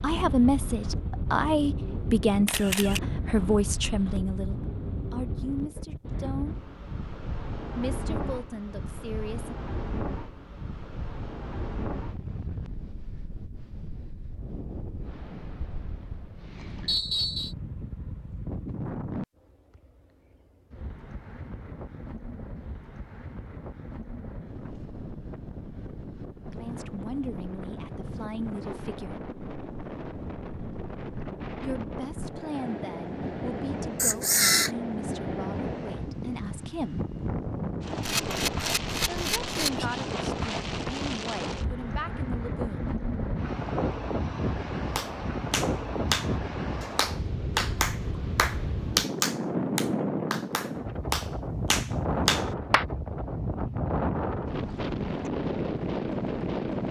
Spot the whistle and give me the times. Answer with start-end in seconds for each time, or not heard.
16.9-17.6.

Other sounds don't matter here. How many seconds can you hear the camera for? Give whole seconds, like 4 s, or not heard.
3 s.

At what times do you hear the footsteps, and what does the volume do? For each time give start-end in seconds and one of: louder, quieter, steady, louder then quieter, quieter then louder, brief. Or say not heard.
not heard.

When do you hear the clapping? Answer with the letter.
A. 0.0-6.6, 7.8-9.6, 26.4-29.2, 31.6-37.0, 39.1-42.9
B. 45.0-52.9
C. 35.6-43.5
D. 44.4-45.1
B.